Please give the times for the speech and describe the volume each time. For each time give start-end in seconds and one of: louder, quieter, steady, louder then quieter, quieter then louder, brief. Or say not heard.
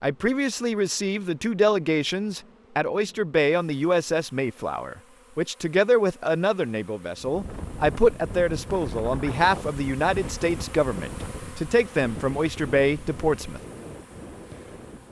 0.0-13.6 steady.